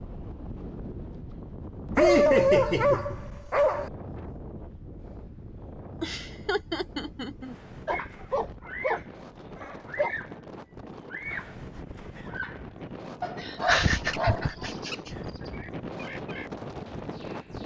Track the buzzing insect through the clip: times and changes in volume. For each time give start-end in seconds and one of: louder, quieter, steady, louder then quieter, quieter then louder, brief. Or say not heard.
not heard.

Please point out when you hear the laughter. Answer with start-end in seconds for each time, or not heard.
1.9-3.2, 6.0-7.5, 13.4-15.1.